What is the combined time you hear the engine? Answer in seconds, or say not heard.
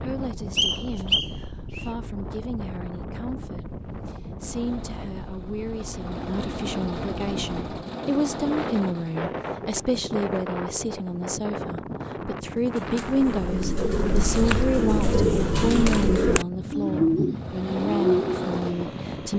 7 s.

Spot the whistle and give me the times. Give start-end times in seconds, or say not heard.
0.6-1.9.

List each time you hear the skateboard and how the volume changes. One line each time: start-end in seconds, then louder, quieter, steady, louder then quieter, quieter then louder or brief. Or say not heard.
not heard.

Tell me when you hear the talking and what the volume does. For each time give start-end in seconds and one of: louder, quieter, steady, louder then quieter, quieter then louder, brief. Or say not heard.
0.0-19.3 louder.